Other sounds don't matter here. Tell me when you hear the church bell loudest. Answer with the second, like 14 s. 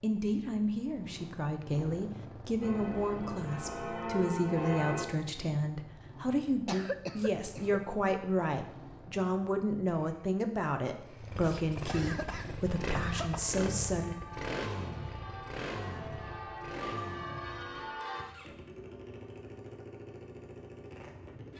5 s.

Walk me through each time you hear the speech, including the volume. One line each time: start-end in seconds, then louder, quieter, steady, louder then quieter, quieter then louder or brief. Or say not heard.
0.0-14.2 steady.